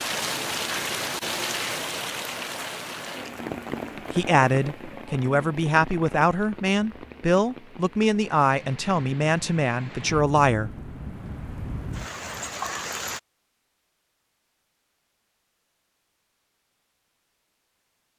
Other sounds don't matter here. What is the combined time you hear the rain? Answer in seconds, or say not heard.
13 s.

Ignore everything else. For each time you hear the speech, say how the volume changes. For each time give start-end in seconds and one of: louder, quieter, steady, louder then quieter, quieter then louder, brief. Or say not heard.
4.1-10.9 steady.